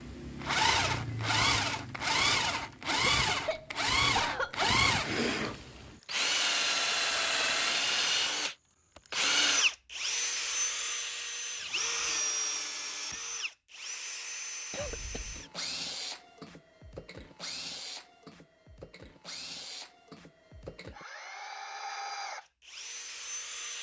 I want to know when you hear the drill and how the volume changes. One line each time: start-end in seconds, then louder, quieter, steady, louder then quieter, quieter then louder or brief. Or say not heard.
0.0-23.7 quieter.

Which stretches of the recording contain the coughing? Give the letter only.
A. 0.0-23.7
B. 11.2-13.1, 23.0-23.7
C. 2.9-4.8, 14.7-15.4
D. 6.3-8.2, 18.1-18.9
C.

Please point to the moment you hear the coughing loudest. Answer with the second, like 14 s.
4 s.